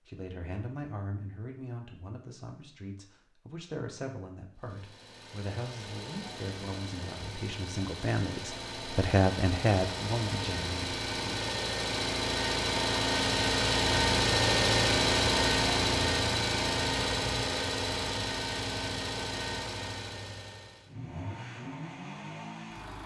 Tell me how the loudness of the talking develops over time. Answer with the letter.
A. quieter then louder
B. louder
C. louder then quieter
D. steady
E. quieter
B.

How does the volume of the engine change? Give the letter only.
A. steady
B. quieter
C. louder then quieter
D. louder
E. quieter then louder
C.